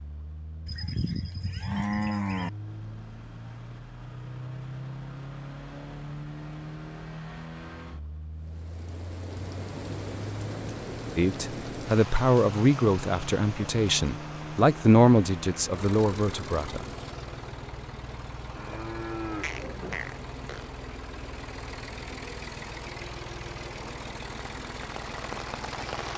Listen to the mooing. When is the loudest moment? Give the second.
2 s.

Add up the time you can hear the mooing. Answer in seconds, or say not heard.
4 s.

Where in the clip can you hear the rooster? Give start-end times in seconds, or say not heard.
not heard.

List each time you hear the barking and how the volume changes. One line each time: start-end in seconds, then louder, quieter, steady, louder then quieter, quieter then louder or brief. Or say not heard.
not heard.